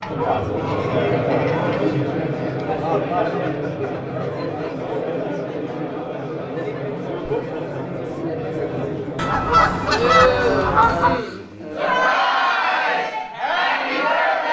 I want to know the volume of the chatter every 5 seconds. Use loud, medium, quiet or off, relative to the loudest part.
loud, medium, loud.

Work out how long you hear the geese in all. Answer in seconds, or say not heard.
4 s.